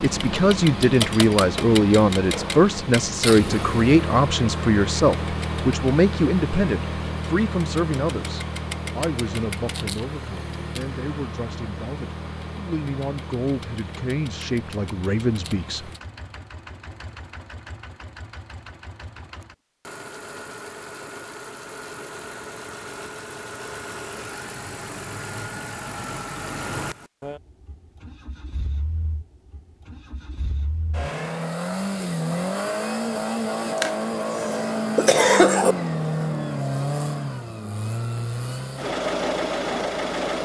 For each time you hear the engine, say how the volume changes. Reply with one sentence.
The engine can be heard from 0.0 to 40.3 s, getting quieter then louder.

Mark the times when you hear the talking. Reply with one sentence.
You can hear the talking from 0.0 to 15.9 s.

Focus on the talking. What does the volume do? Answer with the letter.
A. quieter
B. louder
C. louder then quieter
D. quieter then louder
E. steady
D.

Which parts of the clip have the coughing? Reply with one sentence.
You can hear the coughing from 33.8 to 35.8 s.